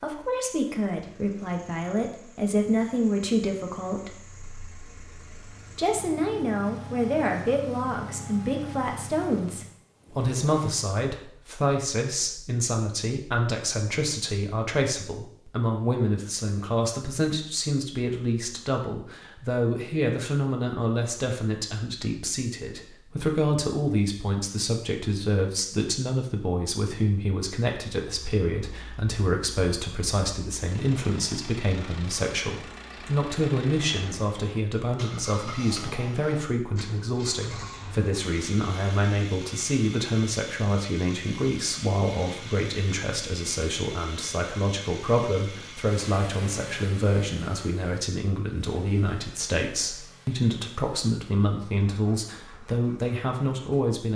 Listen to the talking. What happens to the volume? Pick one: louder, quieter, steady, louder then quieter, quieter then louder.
steady.